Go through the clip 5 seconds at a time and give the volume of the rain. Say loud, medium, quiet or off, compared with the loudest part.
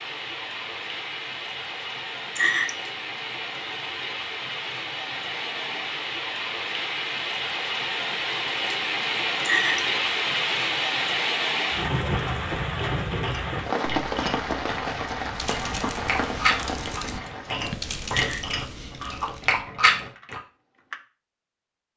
medium, loud, loud, medium, off.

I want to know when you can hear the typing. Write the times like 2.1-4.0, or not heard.
15.3-21.0.